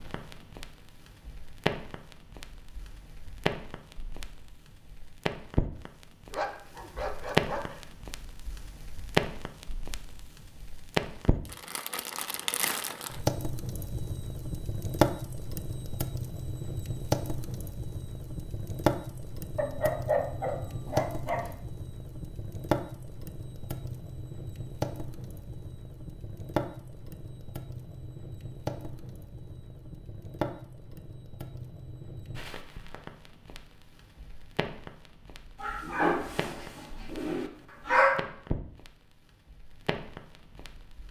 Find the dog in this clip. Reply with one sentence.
You can hear the dog from 6.3 to 7.8 s, from 19.6 to 21.6 s and from 35.6 to 38.2 s.